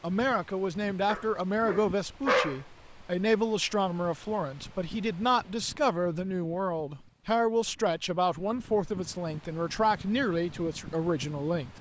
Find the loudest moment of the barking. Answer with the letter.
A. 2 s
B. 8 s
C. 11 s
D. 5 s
A.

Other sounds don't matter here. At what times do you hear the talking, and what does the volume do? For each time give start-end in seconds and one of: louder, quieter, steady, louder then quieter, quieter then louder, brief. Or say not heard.
0.0-11.7 steady.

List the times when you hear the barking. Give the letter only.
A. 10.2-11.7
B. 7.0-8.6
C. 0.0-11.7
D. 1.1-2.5
D.